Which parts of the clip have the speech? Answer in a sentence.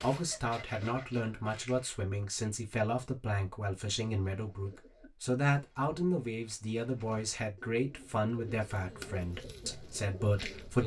The speech can be heard from 0.0 to 10.8 s.